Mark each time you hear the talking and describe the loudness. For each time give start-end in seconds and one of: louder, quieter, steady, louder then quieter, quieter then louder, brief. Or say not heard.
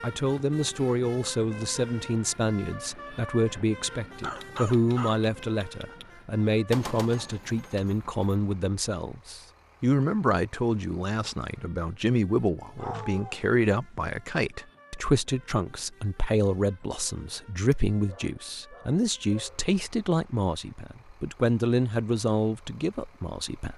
0.0-23.7 steady.